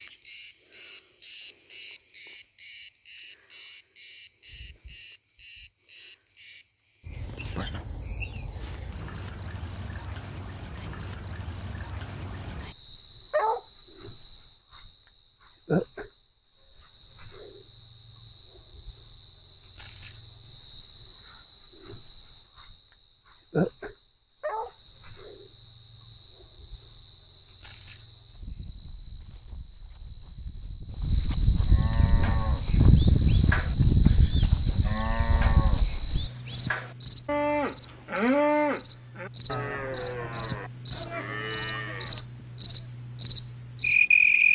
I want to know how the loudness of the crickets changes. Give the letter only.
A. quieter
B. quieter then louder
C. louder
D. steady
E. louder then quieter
C.